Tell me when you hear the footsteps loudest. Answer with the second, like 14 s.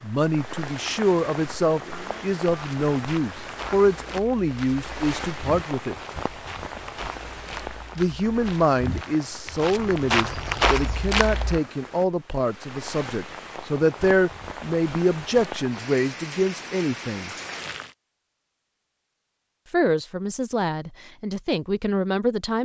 11 s.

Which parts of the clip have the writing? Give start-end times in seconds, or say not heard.
not heard.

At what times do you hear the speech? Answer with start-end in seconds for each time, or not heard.
0.0-6.0, 8.0-17.3, 19.7-22.6.